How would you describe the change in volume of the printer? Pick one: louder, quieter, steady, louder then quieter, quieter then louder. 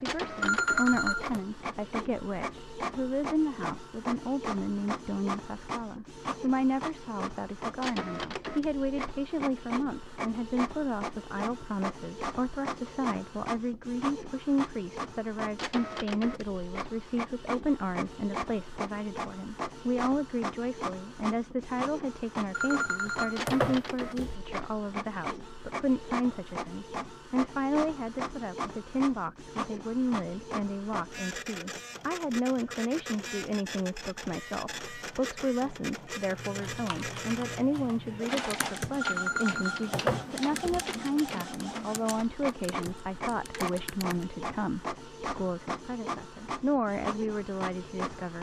steady.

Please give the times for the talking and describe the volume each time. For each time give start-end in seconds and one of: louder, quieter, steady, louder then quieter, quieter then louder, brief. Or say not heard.
0.0-48.3 steady.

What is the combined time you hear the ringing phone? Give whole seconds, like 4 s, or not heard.
5 s.